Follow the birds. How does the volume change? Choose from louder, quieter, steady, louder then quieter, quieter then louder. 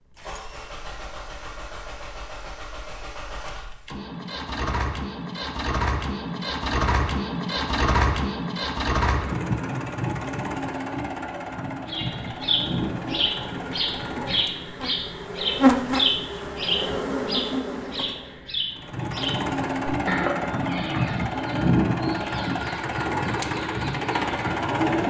quieter.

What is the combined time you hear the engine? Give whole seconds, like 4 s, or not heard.
21 s.